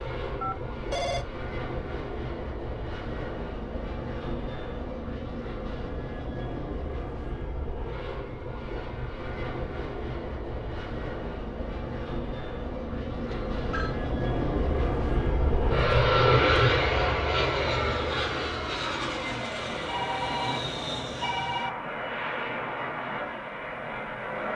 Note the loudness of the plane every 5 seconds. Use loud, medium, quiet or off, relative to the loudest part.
medium, medium, medium, loud, medium.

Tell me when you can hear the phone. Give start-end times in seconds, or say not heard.
0.4-1.2, 13.3-13.9, 19.9-21.7.